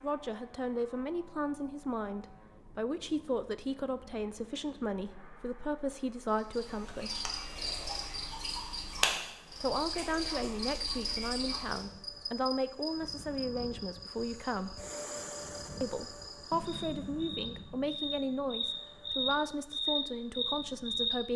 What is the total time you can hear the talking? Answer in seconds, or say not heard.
18 s.